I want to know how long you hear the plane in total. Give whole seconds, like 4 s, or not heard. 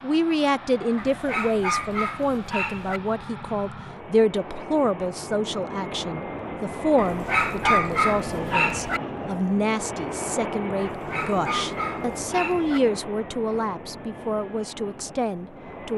16 s.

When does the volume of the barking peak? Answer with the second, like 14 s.
8 s.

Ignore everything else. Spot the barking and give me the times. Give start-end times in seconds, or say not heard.
0.9-3.0, 7.0-9.0, 10.8-12.8.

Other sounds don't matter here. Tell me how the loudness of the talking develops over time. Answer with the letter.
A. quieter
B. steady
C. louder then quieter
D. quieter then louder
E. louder
B.